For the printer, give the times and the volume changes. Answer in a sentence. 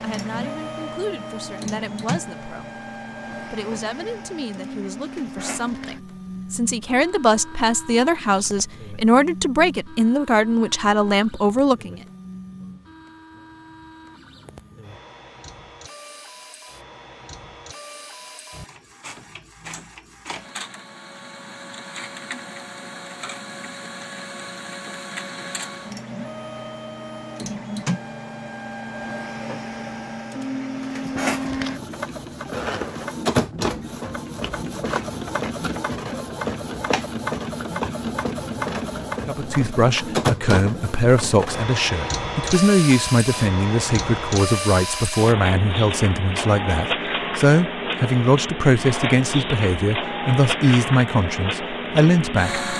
You can hear the printer from 0.0 to 52.7 s, getting quieter then louder.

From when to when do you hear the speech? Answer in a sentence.
You can hear the speech from 0.0 to 12.0 s and from 39.2 to 52.6 s.